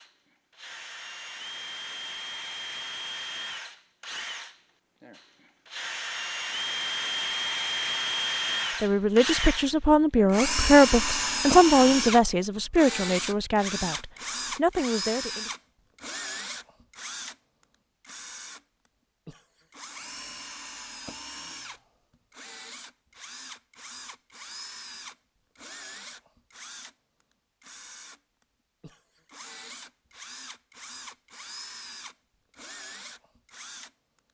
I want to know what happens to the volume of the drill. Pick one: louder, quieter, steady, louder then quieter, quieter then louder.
louder then quieter.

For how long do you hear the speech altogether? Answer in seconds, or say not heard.
7 s.